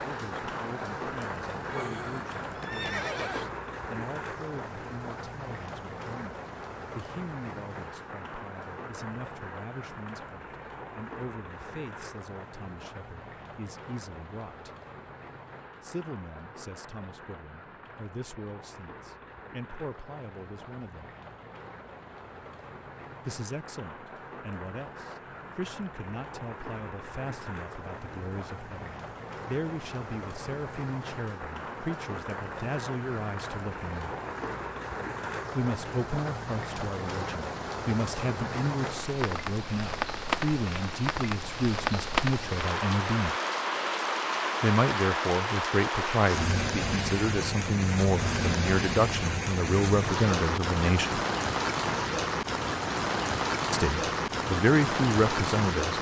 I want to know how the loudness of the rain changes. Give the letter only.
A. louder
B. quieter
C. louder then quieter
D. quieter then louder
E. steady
D.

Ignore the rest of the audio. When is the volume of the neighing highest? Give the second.
3 s.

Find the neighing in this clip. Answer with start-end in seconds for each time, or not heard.
1.6-3.5.